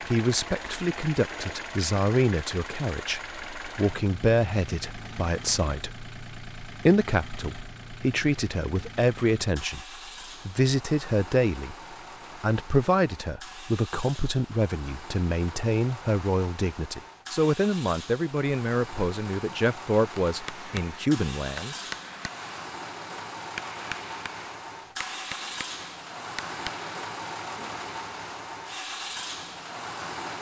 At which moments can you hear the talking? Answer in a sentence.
You can hear the talking from 0.1 to 9.8 s, from 10.4 to 11.8 s and from 12.4 to 21.8 s.